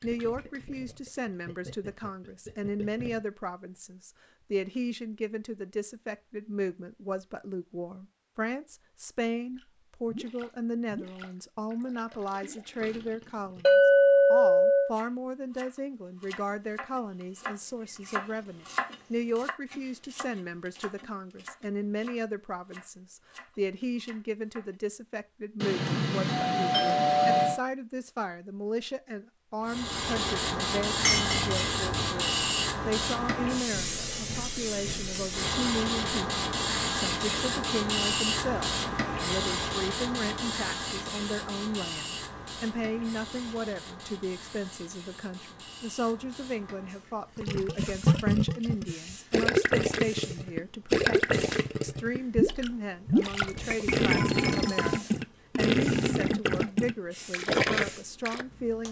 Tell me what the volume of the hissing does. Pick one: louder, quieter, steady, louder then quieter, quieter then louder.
quieter.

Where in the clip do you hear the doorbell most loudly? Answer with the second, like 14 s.
27 s.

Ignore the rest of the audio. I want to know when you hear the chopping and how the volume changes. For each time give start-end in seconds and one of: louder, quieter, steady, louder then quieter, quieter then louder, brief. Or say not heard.
14.8-24.8 louder then quieter.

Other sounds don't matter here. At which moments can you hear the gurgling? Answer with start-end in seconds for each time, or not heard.
0.0-3.2, 9.5-13.7, 47.4-58.5.